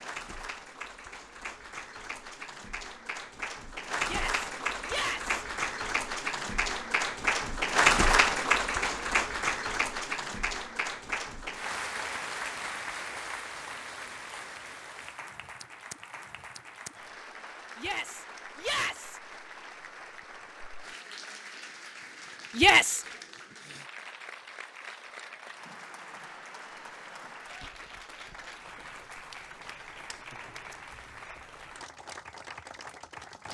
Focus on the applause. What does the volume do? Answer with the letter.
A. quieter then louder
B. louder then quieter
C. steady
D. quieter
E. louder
B.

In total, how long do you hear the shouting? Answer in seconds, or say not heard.
3 s.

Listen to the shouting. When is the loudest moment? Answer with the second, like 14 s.
23 s.